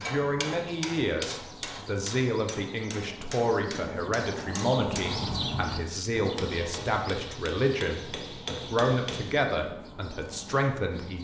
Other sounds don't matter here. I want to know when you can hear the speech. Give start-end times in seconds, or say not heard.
0.0-11.2.